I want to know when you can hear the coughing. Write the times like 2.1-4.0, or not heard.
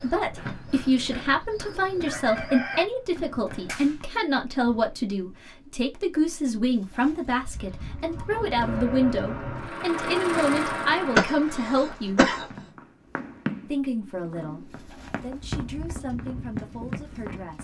11.2-12.4.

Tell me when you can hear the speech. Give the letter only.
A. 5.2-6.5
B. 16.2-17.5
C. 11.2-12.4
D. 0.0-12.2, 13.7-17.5
D.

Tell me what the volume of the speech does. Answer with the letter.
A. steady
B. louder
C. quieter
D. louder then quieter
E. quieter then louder
C.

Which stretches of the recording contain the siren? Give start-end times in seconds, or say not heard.
not heard.